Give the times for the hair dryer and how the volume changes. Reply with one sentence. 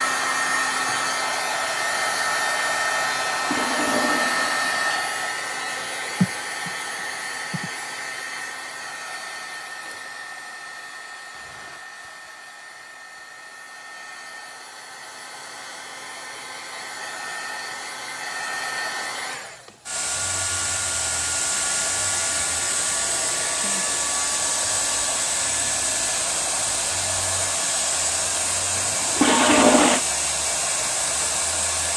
The hair dryer can be heard from 0.0 to 31.9 s, getting quieter then louder.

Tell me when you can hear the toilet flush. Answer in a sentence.
You can hear the toilet flush from 3.1 to 5.0 s and from 28.8 to 30.0 s.